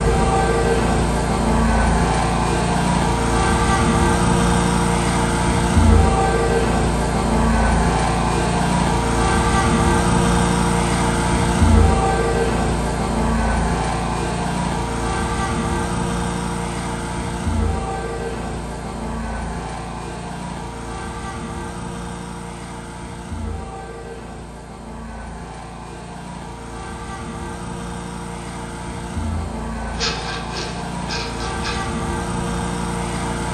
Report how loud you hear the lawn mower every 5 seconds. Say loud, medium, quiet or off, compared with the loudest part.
loud, loud, loud, medium, quiet, quiet, medium.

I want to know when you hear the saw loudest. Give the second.
30 s.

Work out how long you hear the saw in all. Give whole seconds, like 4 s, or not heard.
2 s.